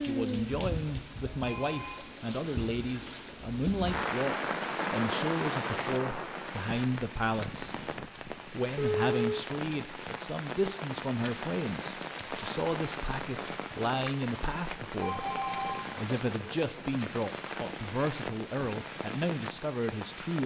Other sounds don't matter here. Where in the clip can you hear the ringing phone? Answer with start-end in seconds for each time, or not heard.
1.4-2.0, 8.8-9.4, 15.0-16.1.